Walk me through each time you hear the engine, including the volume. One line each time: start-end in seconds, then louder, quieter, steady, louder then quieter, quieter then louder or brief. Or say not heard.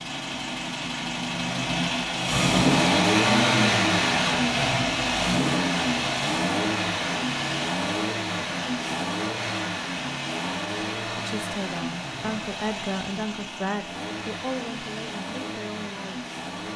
0.0-16.7 quieter.